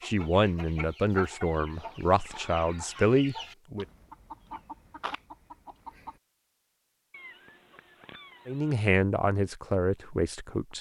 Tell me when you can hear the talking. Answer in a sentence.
The talking can be heard from 0.0 to 3.9 s and from 8.4 to 10.7 s.